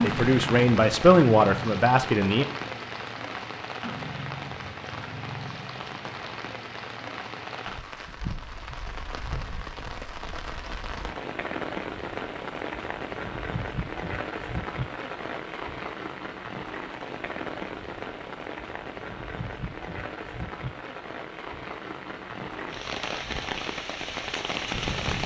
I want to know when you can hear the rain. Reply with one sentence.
You can hear the rain from 0.0 to 25.2 s.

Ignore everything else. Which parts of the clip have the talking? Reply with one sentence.
The talking can be heard from 0.0 to 2.5 s.